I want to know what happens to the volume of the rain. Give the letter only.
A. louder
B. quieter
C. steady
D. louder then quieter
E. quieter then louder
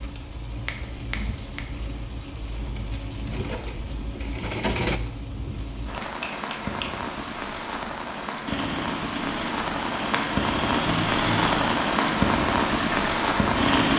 A.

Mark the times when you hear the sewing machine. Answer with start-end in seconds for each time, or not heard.
3.3-5.0, 8.4-13.9.